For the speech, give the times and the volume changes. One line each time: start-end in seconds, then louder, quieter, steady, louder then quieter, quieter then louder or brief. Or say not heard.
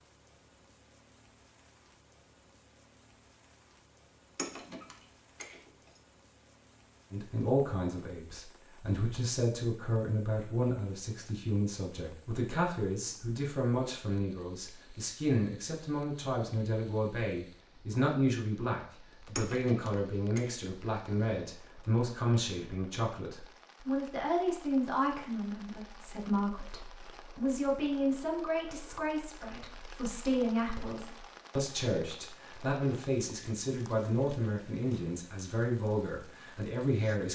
7.1-37.2 steady.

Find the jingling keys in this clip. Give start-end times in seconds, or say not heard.
4.3-6.0, 19.4-20.6.